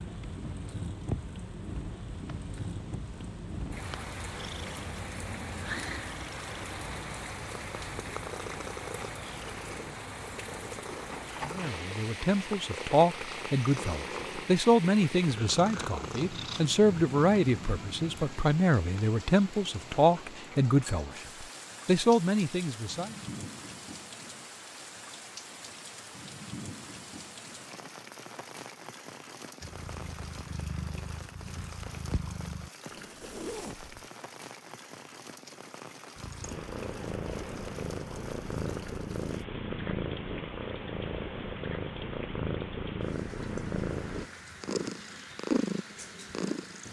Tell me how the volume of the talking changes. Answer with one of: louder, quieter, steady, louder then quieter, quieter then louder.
steady.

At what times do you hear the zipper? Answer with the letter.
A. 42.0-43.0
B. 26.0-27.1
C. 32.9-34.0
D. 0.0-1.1
C.